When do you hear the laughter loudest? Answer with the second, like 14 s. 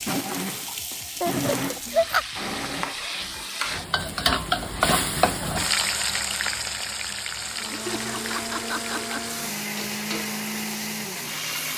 2 s.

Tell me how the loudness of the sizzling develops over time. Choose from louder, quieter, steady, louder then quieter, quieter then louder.
louder then quieter.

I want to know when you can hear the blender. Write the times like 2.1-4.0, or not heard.
0.0-3.4, 7.4-11.7.